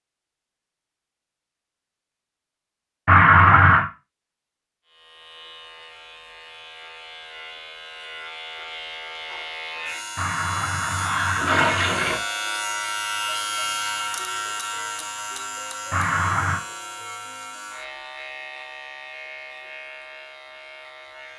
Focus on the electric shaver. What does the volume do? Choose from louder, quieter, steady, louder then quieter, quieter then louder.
louder then quieter.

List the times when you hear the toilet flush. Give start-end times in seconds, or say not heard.
3.0-3.9, 10.2-12.2, 15.9-16.6.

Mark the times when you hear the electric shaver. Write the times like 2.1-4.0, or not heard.
4.8-21.3.